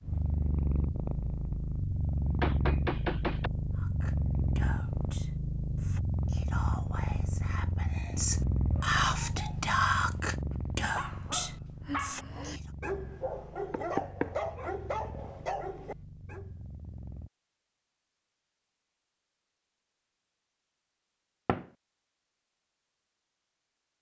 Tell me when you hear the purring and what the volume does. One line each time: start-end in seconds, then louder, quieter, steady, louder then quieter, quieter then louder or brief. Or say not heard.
0.0-17.3 quieter.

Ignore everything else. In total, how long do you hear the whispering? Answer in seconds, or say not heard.
9 s.